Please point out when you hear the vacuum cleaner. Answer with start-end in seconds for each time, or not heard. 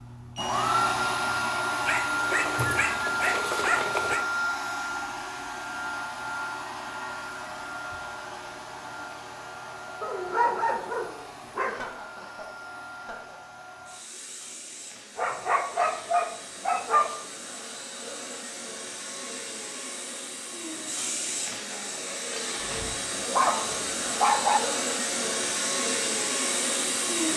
0.0-27.3.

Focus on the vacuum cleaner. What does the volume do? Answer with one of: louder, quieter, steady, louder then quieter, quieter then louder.
quieter then louder.